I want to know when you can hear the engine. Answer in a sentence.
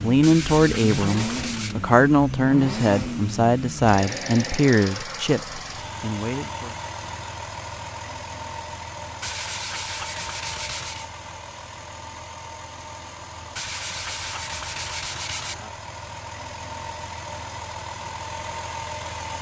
You can hear the engine from 0.0 to 19.3 s.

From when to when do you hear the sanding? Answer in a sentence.
The sanding can be heard from 0.2 to 1.8 s, from 9.2 to 11.1 s and from 13.6 to 15.6 s.